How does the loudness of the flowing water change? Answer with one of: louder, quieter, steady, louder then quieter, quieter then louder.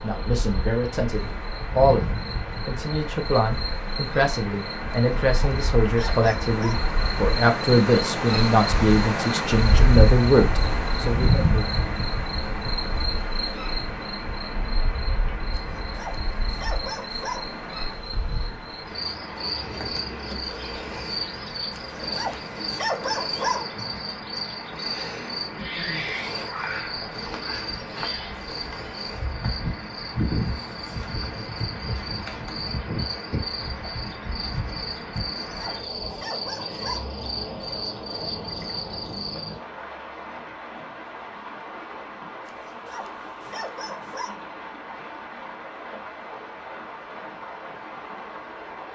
quieter.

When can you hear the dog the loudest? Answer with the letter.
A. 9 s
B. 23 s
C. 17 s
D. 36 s
B.